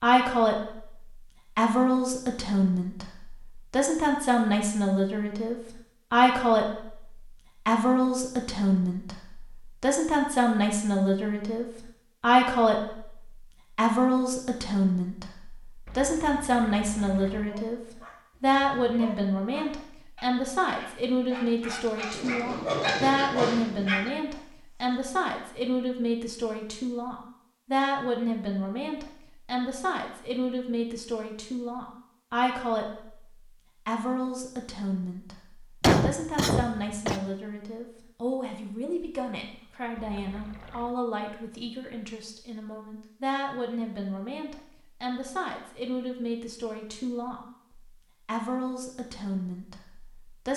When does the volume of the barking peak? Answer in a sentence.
The loudest moment of the barking is at 23 seconds.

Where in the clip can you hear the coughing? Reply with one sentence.
You can hear the coughing from 35.8 to 37.2 s.